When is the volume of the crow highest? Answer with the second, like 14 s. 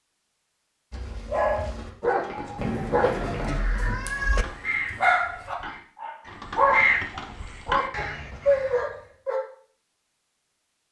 7 s.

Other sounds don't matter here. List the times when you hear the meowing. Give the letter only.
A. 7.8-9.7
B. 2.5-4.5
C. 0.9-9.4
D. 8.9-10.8
B.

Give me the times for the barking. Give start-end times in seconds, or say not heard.
0.9-9.4.